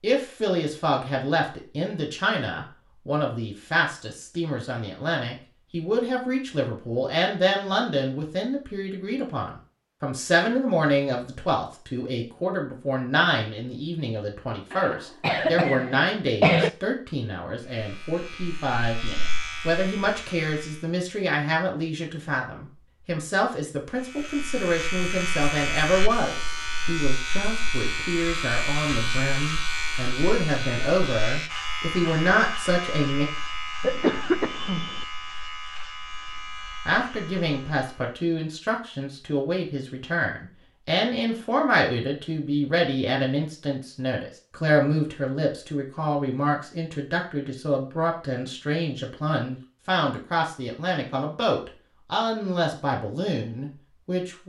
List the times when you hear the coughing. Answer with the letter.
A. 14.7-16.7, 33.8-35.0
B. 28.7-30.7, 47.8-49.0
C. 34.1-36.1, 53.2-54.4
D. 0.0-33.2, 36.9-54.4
A.